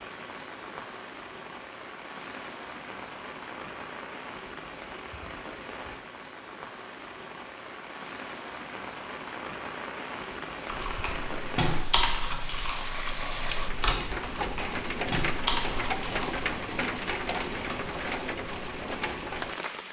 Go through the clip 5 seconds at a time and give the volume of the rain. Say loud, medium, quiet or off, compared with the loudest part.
medium, medium, loud, loud.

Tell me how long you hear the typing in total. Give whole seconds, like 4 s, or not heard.
6 s.